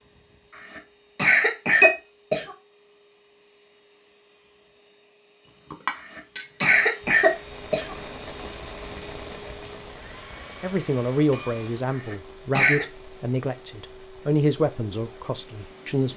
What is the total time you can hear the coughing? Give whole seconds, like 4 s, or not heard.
5 s.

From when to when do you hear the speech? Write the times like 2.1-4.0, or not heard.
10.6-16.1.